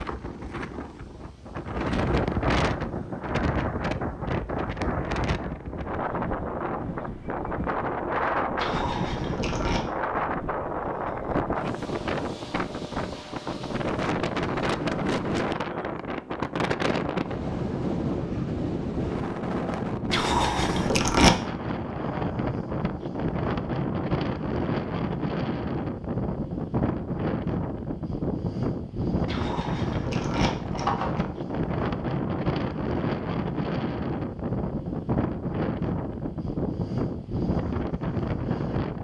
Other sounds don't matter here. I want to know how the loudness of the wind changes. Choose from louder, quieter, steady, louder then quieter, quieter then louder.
steady.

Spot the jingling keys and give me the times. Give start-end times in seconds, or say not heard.
8.6-9.8, 20.1-21.4, 29.2-31.2.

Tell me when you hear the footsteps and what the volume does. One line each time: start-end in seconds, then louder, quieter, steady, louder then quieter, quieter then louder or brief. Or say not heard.
not heard.